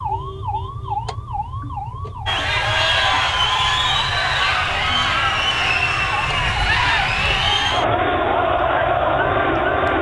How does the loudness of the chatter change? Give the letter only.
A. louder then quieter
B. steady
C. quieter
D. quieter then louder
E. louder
B.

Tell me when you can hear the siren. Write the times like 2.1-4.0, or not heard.
0.0-9.9.